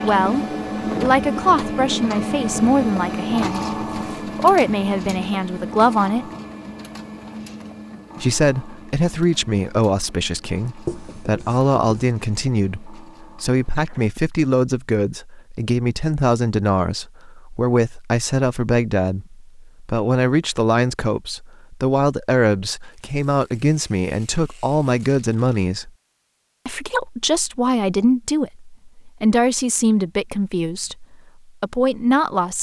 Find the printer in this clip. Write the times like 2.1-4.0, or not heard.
0.0-14.2.